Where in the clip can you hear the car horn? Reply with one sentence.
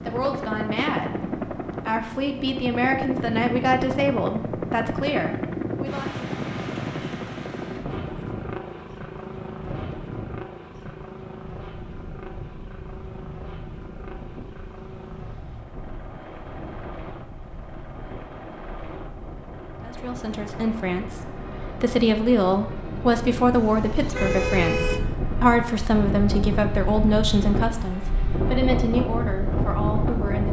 The car horn can be heard from 23.5 to 25.0 s.